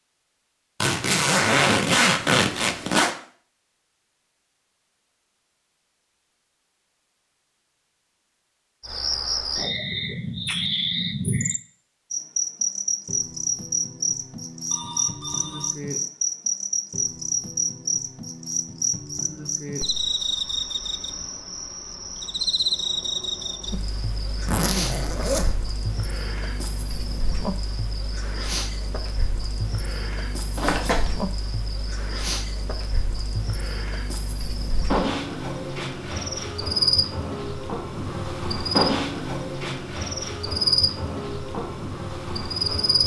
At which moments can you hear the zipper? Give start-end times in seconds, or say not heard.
0.8-3.1, 24.4-25.6, 30.6-31.1.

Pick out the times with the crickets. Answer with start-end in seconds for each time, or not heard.
8.8-43.0.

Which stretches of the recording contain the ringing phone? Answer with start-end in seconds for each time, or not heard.
14.7-15.8.